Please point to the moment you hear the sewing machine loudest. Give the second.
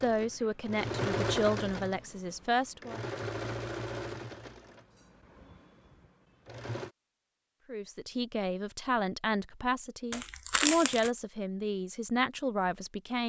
1 s.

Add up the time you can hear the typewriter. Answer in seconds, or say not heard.
not heard.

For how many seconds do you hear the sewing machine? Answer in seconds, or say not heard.
7 s.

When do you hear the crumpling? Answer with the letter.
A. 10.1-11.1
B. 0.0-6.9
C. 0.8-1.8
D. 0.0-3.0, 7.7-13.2
A.